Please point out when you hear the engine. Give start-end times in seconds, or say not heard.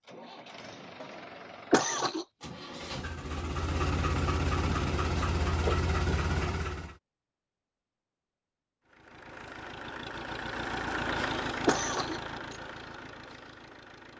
0.0-7.0, 8.8-14.1.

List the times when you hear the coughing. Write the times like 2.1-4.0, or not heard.
1.7-2.2, 11.7-12.2.